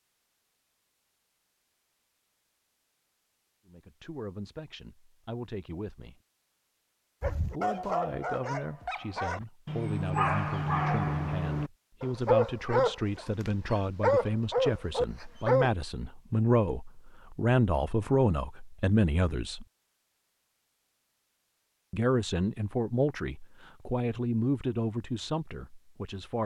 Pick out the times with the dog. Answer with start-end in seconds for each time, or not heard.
7.2-15.7.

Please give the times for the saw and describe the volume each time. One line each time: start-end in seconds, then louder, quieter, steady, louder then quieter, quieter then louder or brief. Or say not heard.
not heard.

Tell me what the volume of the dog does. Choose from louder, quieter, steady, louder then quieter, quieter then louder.
louder.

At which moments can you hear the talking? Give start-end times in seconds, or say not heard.
3.6-6.2, 7.5-19.6, 21.9-26.4.